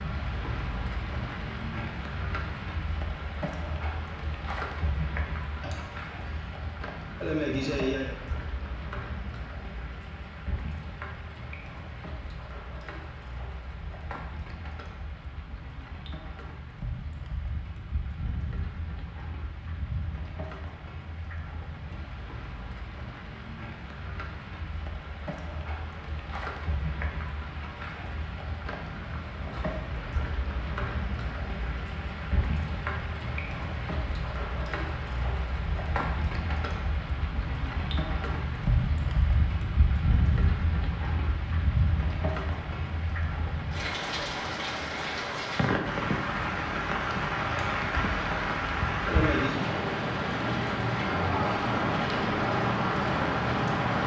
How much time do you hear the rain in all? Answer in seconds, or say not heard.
54 s.